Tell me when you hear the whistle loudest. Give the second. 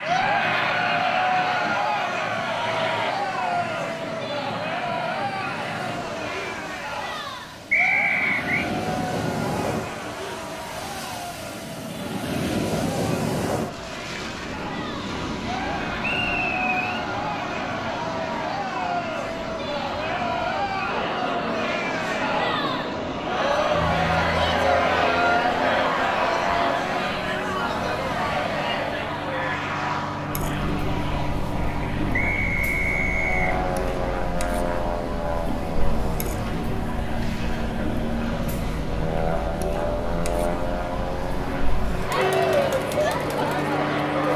8 s.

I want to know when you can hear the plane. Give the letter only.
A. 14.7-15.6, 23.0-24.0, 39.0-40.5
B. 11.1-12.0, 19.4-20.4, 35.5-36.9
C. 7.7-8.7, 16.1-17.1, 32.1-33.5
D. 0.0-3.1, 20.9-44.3
D.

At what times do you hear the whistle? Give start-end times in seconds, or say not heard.
7.7-8.7, 16.1-17.1, 32.1-33.5.